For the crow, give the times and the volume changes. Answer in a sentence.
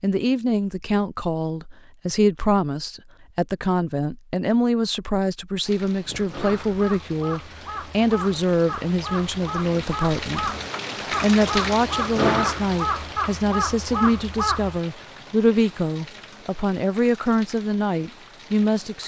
The crow can be heard from 6.0 to 14.8 s, getting louder.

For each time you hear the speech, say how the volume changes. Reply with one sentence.
You can hear the speech from 0.0 to 10.5 s, at a steady volume; and from 11.2 to 19.0 s, at a steady volume.